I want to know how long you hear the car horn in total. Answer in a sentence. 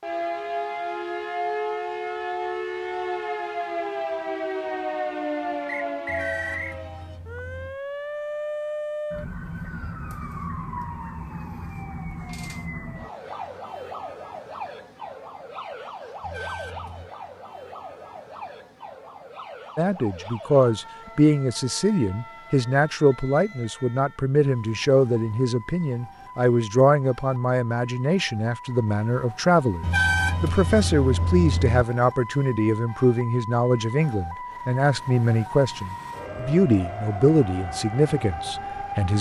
The car horn can be heard for 5 seconds in total.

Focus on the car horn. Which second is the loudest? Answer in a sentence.
The volume of the car horn peaks at 30 seconds.